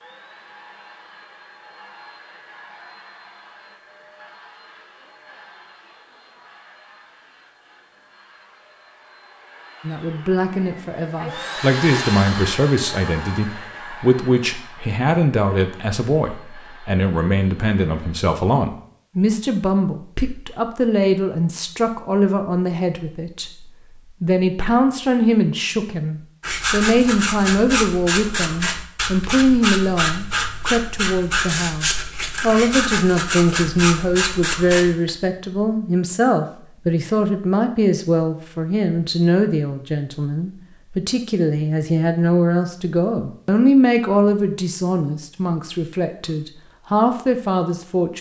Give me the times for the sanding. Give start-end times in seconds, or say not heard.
26.4-35.1.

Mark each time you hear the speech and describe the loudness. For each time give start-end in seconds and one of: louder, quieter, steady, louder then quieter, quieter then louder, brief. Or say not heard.
9.8-48.1 steady.